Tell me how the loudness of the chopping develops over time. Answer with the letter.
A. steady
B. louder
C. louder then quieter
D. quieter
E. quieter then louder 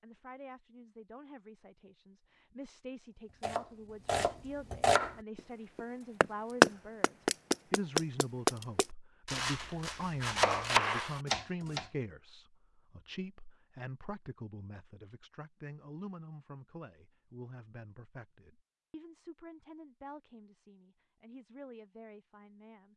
C.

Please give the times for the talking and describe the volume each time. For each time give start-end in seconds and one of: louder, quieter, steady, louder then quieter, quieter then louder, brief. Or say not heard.
0.0-22.9 louder then quieter.